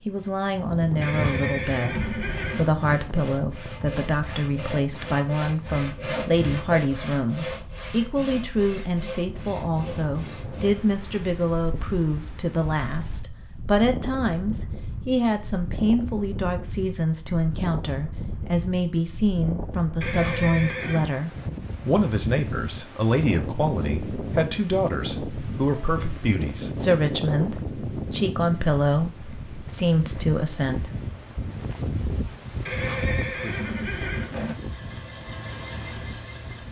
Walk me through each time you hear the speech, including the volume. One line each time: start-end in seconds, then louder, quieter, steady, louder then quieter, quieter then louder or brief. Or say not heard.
0.1-30.9 steady.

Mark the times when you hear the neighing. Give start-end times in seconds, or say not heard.
1.0-2.7, 20.0-21.1, 32.6-34.5.